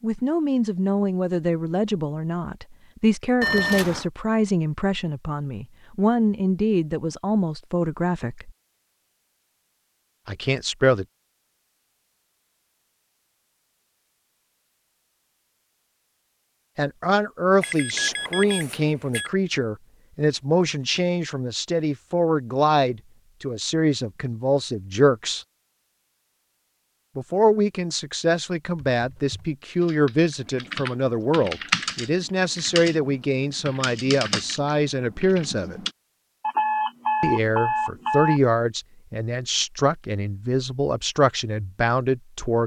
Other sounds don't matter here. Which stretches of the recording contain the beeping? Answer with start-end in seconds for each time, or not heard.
3.4-4.0, 17.6-19.3, 36.4-38.4.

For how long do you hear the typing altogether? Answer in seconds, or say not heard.
7 s.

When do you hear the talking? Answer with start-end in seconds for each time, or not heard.
0.0-8.5, 10.2-11.1, 16.8-25.4, 27.1-35.8, 37.2-42.6.